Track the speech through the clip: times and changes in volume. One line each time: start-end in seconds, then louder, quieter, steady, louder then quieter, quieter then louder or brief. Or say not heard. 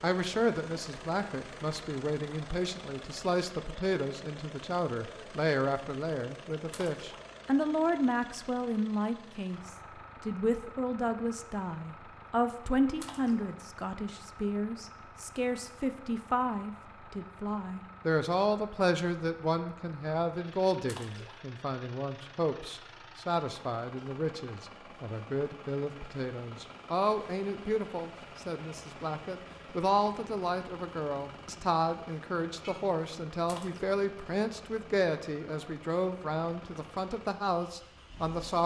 0.0-38.6 steady.